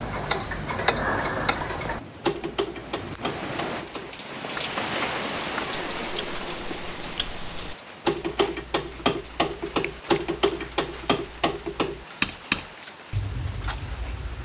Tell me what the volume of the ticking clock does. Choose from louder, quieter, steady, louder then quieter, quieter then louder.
quieter then louder.